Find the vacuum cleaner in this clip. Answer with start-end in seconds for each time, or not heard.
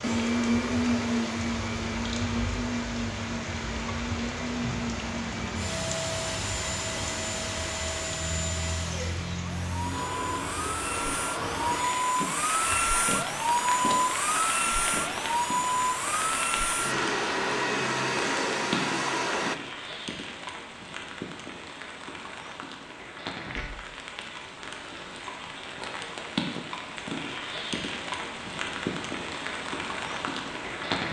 0.0-19.6.